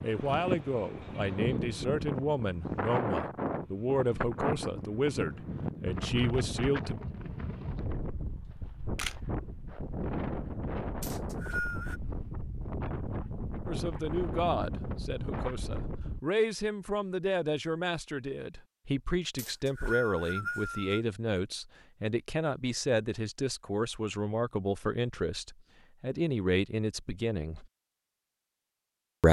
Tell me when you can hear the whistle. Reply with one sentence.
The whistle can be heard from 11.0 to 12.0 s and from 19.4 to 21.0 s.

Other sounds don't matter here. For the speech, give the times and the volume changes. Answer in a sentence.
The speech can be heard from 0.0 to 7.0 s, at a steady volume; and from 13.7 to 27.6 s, at a steady volume.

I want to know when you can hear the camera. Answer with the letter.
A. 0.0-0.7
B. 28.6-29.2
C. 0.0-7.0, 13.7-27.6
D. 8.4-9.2
D.